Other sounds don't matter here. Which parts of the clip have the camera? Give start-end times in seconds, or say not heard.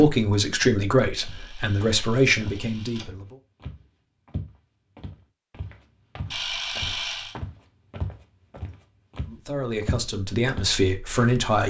1.1-3.0, 6.3-7.3.